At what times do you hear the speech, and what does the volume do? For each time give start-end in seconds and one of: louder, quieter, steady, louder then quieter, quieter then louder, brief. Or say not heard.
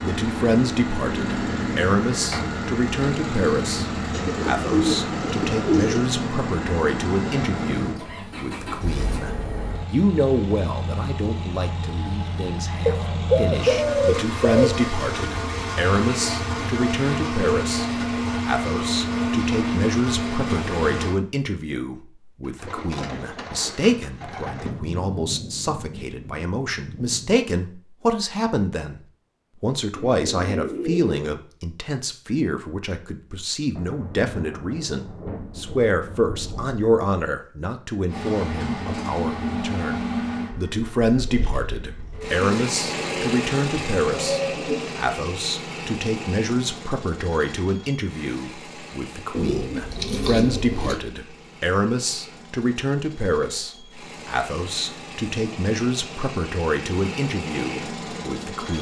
0.0-29.0 steady
29.6-58.7 steady.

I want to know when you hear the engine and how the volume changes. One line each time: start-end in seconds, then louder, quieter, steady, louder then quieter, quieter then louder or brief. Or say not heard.
0.0-21.1 quieter then louder
38.0-58.7 quieter then louder.